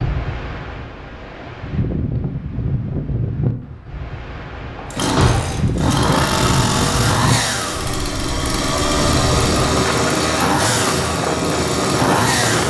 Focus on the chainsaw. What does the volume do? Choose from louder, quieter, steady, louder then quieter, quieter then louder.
steady.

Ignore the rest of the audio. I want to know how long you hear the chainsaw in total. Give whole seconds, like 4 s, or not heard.
8 s.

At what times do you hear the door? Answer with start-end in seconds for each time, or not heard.
4.8-5.6.